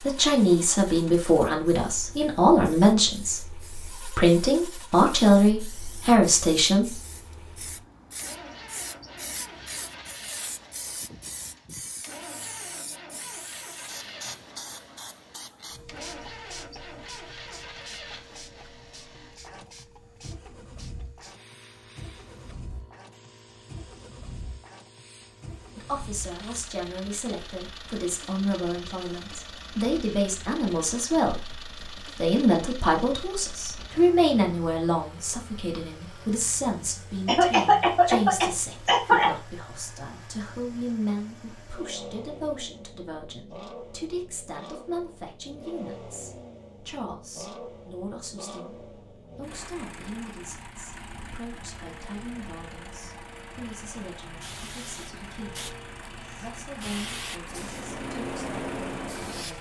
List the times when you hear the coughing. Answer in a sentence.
You can hear the coughing from 37.2 to 39.3 s.